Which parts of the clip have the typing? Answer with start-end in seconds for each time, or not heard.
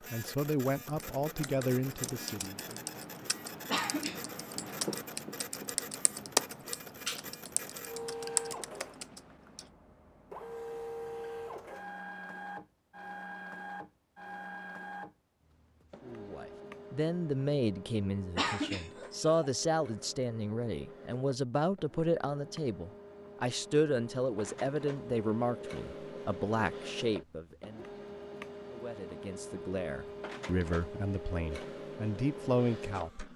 0.8-9.7.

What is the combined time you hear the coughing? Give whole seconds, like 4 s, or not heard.
2 s.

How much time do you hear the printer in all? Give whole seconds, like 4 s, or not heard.
33 s.